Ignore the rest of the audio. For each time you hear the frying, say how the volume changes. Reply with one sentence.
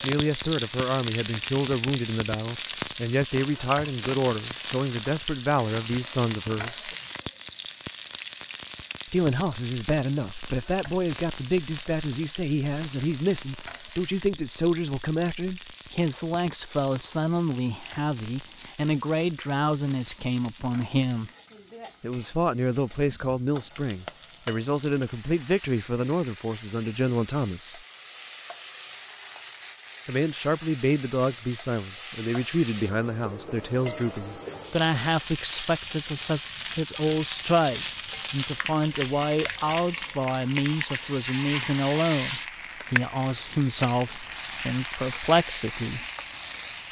You can hear the frying from 0.0 to 46.8 s, getting quieter then louder.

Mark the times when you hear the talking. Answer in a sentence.
The talking can be heard from 0.0 to 6.9 s, from 9.1 to 21.3 s, from 22.0 to 27.8 s and from 30.1 to 46.0 s.